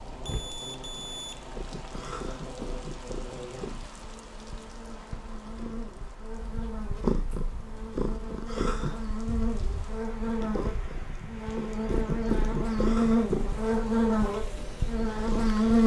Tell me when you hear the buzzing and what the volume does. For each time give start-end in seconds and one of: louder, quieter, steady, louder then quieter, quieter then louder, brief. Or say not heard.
0.0-15.8 louder.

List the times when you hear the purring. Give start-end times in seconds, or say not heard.
0.1-15.8.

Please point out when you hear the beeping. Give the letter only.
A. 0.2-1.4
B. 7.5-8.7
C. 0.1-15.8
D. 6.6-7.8
A.